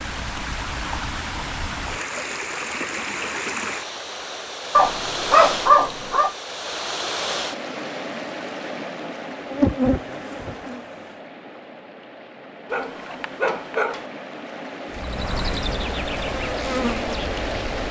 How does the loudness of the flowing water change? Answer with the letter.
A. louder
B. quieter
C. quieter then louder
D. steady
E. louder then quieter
C.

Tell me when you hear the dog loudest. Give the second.
6 s.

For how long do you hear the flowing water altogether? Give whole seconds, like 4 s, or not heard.
18 s.